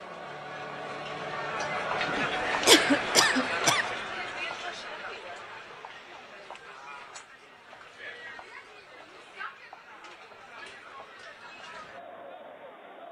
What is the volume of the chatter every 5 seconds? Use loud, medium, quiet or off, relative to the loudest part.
loud, quiet, quiet.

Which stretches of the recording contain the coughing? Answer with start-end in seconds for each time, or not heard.
2.0-3.9.